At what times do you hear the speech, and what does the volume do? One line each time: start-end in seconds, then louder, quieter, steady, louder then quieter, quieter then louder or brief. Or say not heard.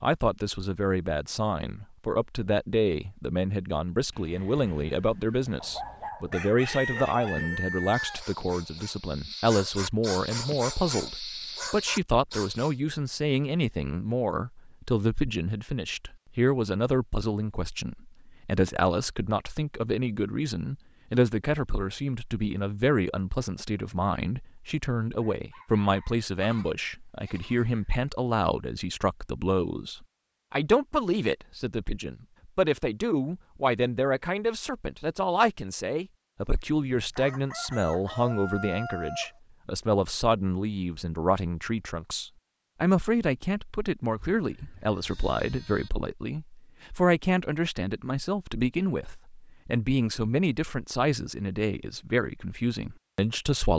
0.0-53.7 steady.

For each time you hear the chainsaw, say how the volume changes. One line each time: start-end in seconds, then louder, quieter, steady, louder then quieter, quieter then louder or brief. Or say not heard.
not heard.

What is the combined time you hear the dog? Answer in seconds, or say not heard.
7 s.